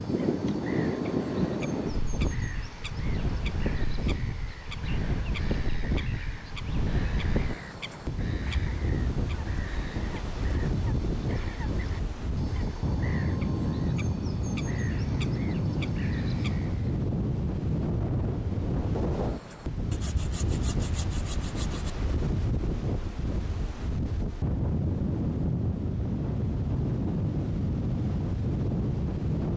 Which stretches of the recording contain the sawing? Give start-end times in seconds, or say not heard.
19.9-21.9.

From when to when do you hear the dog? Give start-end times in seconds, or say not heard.
not heard.